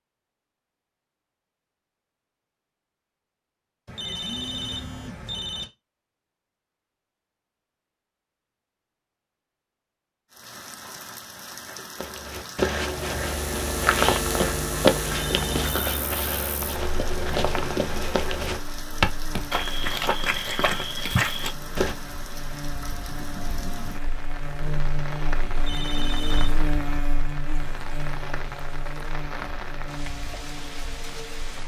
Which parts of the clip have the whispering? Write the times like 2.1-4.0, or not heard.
not heard.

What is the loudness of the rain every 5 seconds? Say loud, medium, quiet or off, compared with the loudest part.
off, off, loud, loud, loud, loud, loud.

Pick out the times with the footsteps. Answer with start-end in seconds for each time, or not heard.
11.9-21.9.